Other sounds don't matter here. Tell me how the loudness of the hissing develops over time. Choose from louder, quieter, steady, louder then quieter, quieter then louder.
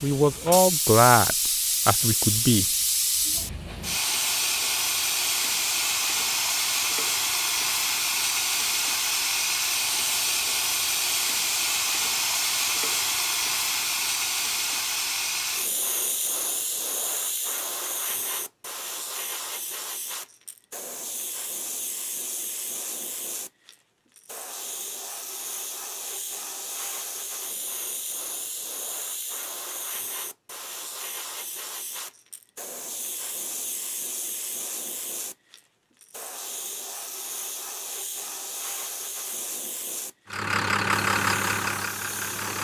quieter.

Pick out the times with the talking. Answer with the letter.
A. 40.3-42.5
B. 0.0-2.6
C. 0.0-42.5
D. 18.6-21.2
B.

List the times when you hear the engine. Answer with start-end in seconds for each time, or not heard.
40.3-42.5.